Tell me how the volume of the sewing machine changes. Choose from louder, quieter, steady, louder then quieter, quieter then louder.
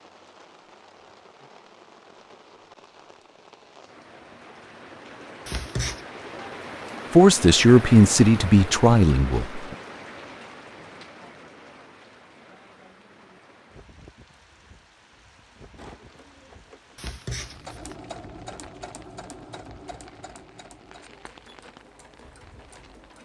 louder then quieter.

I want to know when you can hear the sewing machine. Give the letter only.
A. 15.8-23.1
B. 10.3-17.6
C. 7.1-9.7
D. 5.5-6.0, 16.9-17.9
A.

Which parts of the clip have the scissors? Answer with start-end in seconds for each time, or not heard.
5.5-6.0, 16.9-17.9.